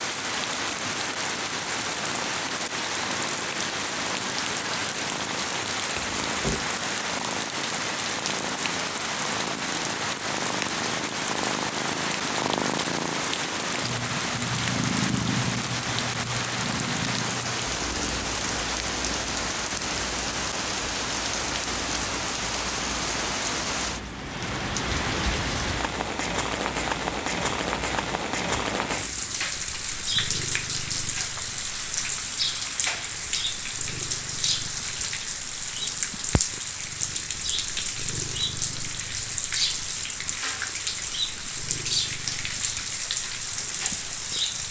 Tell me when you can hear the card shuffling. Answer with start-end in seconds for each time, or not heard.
6.0-6.7.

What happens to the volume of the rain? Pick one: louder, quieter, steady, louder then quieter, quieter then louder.
steady.